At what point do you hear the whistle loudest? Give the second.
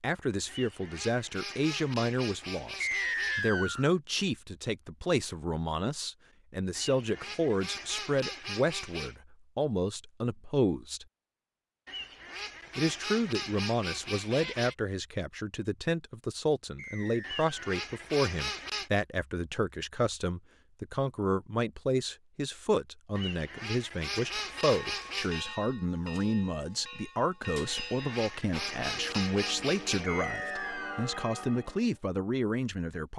3 s.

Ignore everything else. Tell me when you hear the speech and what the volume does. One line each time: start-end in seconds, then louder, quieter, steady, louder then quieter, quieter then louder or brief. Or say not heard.
0.0-11.1 steady
12.8-33.1 steady.